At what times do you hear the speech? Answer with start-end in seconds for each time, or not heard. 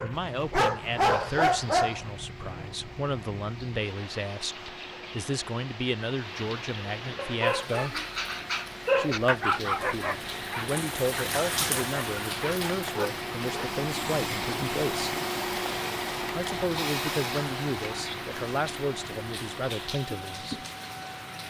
0.0-8.0, 8.9-15.2, 16.3-20.6.